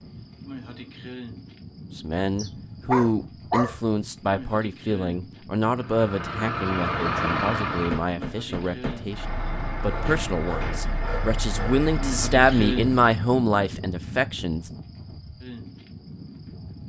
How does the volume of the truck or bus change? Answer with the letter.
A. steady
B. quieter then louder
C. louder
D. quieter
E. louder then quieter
D.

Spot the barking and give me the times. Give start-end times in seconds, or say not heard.
2.4-3.8, 9.8-11.8.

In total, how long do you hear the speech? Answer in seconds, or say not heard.
13 s.